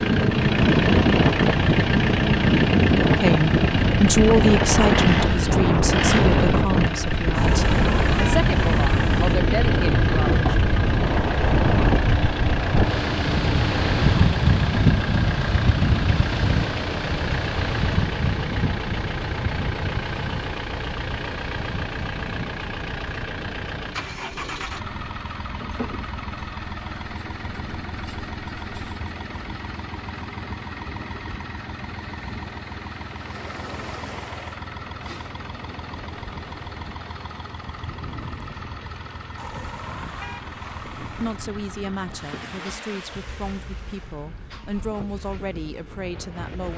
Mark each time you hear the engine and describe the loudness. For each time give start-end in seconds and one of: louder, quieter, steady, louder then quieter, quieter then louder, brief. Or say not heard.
0.0-46.7 quieter.